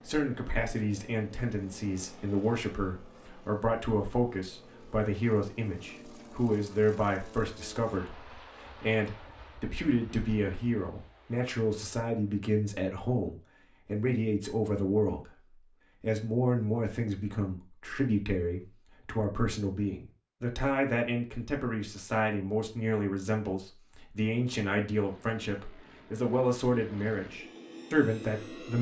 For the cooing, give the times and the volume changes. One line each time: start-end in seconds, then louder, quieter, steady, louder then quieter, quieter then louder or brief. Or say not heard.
not heard.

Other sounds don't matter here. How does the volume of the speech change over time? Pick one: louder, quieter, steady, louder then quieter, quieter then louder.
steady.